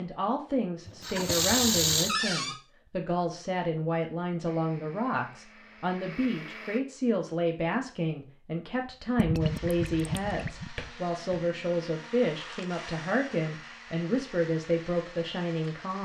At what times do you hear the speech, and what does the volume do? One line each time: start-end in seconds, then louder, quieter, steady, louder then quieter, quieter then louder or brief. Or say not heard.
0.0-16.0 steady.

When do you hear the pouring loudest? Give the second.
2 s.